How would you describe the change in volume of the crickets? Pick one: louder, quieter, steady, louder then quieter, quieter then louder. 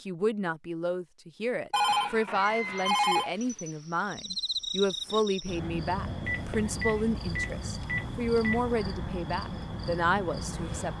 steady.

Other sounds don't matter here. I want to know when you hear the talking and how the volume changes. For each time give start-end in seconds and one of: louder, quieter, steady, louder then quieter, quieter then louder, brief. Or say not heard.
0.0-10.9 steady.